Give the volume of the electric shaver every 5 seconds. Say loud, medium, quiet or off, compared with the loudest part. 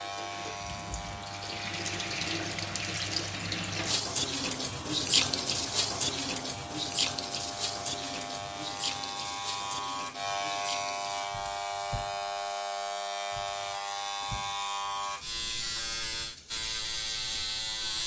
medium, medium, loud, loud.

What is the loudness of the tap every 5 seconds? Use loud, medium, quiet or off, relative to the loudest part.
loud, loud, quiet, quiet.